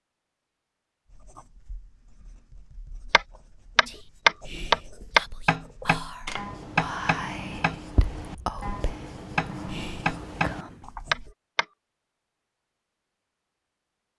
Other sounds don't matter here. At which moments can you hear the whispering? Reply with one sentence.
You can hear the whispering from 3.9 to 10.9 s.